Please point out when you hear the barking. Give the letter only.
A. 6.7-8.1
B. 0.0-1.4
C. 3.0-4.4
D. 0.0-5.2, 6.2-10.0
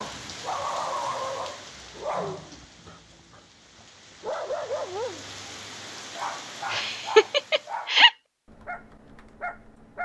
D.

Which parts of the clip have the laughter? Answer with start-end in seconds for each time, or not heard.
6.7-8.1.